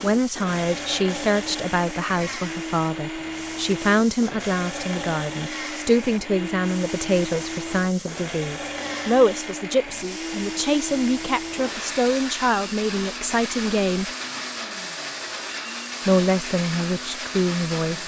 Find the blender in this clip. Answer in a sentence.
You can hear the blender from 0.0 to 18.0 s.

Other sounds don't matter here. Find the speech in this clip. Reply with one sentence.
The speech can be heard from 0.0 to 14.1 s and from 16.1 to 18.0 s.